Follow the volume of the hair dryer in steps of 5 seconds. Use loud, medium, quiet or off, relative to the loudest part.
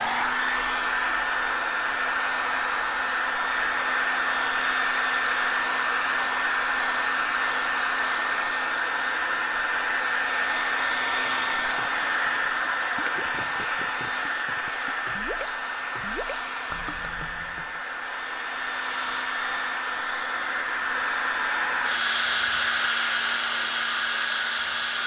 loud, loud, loud, medium, loud.